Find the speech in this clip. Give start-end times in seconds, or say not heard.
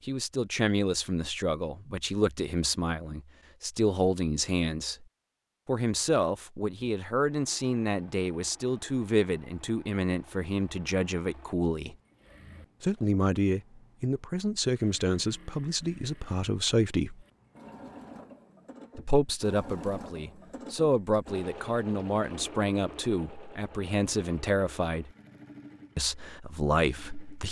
0.1-5.0, 5.7-11.9, 12.8-17.2, 18.9-25.1, 25.9-27.4.